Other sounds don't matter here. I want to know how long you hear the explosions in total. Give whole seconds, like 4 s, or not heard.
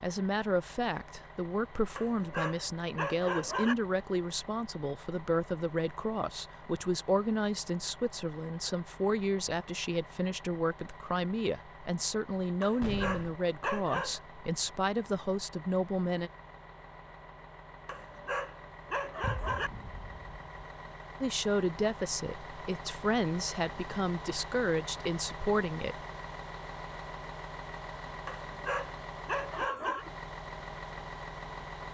2 s.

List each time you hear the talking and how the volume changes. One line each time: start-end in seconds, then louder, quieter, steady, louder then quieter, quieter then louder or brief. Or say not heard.
0.0-16.3 steady
21.2-25.9 steady.